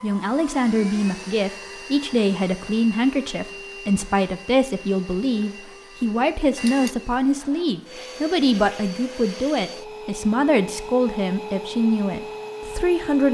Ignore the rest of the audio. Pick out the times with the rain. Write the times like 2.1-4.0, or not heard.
not heard.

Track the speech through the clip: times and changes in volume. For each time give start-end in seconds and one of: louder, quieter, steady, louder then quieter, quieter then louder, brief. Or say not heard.
0.0-13.3 steady.